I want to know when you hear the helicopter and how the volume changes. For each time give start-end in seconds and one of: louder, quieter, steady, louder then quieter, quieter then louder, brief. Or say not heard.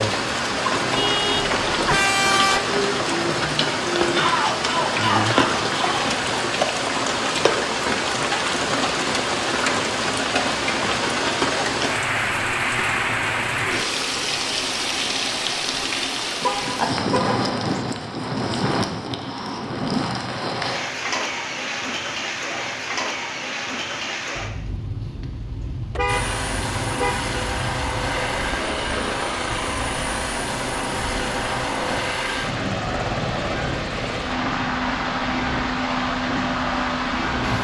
26.1-37.5 steady.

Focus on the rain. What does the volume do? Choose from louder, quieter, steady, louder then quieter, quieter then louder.
quieter.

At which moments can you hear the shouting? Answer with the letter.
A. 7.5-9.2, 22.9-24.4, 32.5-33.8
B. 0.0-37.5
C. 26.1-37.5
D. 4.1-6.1
D.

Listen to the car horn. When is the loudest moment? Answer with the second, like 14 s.
2 s.